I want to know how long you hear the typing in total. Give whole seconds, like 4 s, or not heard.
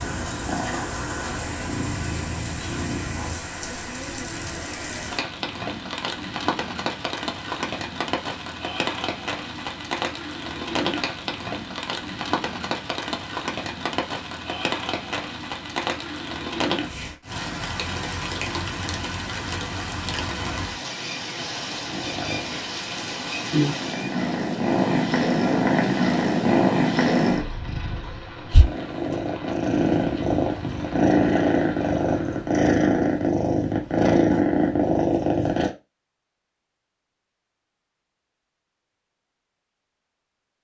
not heard.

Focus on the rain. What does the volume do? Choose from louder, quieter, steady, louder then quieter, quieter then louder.
quieter.